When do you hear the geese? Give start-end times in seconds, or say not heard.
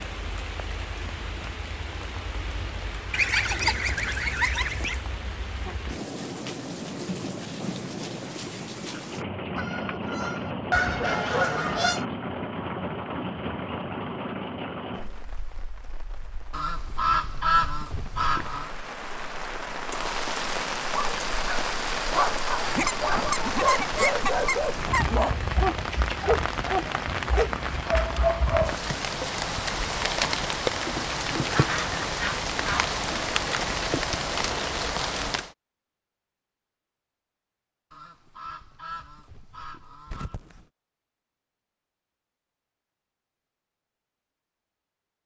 3.1-5.0, 9.6-12.1, 16.5-18.7, 22.8-25.4, 31.5-33.0, 37.9-40.6.